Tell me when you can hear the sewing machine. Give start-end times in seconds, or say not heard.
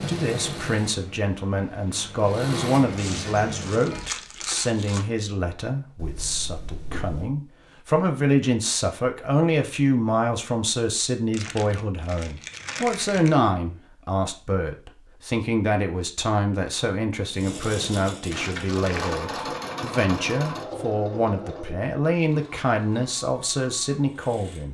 0.0-4.1, 17.3-24.6.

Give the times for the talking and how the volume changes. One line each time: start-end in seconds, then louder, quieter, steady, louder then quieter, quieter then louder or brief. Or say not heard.
0.1-24.6 steady.